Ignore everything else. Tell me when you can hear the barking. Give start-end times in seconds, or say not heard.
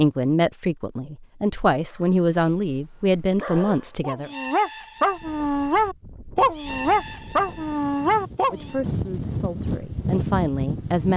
1.9-8.8.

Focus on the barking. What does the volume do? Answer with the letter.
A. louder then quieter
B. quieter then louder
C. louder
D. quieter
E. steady
C.